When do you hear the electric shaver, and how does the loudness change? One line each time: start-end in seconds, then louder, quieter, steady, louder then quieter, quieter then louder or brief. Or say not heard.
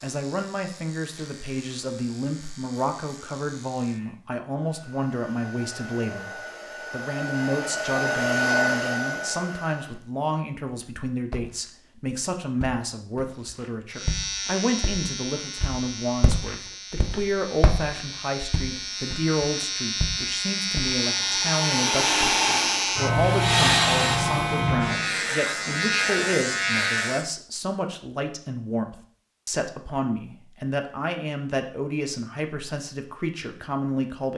0.0-4.2 steady
13.9-27.3 louder.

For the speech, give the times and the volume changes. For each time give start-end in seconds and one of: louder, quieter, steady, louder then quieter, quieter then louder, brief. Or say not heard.
0.0-34.3 steady.